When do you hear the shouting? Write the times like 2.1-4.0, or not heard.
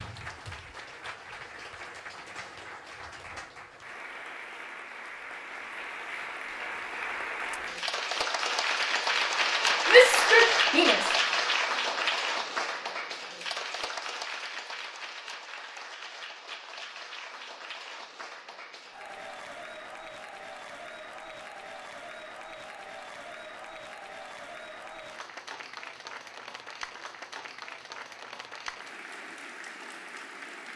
9.8-11.1.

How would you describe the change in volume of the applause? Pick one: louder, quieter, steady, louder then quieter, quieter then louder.
louder then quieter.